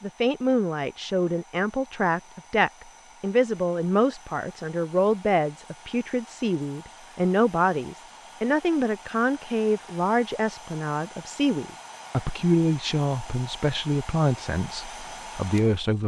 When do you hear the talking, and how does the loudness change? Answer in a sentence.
The talking can be heard from 0.0 to 16.0 s, at a steady volume.